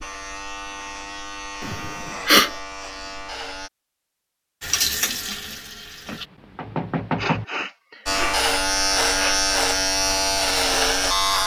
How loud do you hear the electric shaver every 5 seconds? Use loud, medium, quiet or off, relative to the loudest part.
quiet, loud, loud.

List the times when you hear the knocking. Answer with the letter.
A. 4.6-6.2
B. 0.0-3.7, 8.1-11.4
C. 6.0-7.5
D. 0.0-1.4
C.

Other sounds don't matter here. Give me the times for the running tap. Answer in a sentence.
You can hear the running tap from 4.6 to 6.2 s.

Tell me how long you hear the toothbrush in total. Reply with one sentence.
The toothbrush can't be heard in this clip.